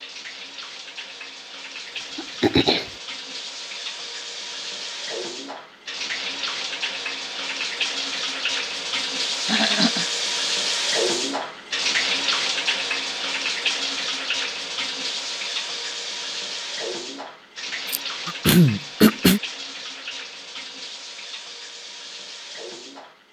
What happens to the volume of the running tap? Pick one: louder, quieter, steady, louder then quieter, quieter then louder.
louder then quieter.